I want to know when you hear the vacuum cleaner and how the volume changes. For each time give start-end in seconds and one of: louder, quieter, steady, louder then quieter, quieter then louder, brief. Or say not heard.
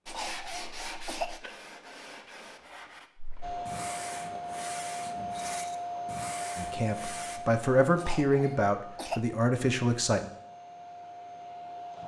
3.4-12.0 quieter.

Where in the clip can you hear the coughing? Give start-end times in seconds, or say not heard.
0.1-1.4, 8.0-9.2.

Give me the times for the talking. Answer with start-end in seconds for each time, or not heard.
6.5-10.2.